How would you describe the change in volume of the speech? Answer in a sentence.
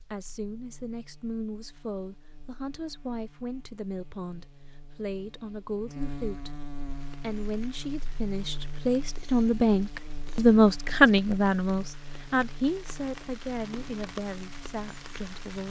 The volume of the speech goes up, then down.